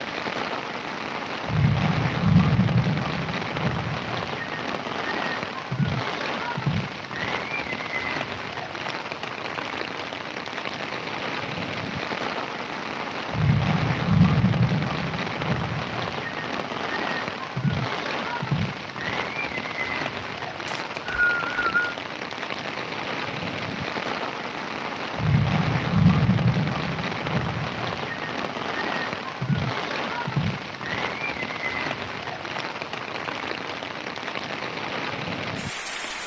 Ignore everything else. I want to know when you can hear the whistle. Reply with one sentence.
You can hear the whistle from 20.6 to 21.9 s.